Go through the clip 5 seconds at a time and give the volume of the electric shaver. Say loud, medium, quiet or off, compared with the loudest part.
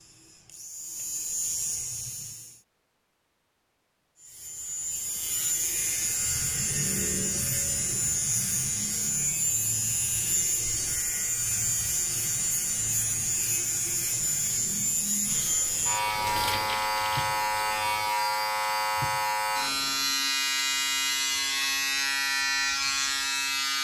medium, loud, loud, loud, loud.